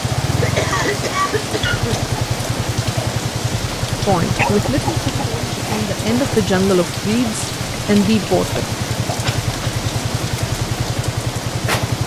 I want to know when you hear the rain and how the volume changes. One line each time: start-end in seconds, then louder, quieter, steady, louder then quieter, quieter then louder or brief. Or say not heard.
0.0-12.0 steady.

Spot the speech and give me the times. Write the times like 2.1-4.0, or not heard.
4.0-8.7.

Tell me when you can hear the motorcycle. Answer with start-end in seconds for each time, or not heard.
0.0-12.0.